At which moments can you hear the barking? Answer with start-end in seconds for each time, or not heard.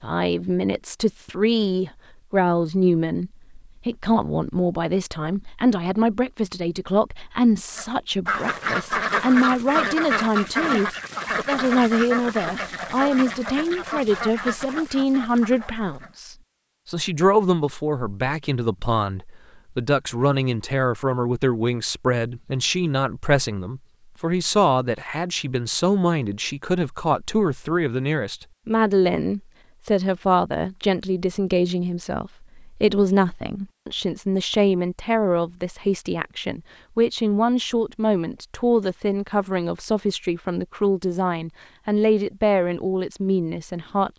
not heard.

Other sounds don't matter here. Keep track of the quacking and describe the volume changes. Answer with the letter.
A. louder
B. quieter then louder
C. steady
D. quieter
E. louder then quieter
D.